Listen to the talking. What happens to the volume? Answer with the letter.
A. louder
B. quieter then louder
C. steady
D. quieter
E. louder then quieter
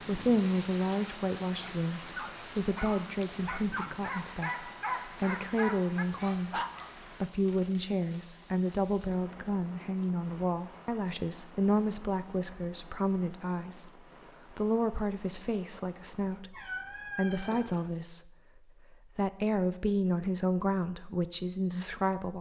C.